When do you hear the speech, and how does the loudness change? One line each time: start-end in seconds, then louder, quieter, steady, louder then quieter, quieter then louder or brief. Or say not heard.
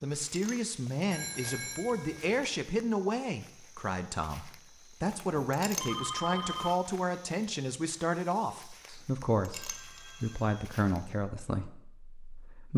0.0-12.7 steady.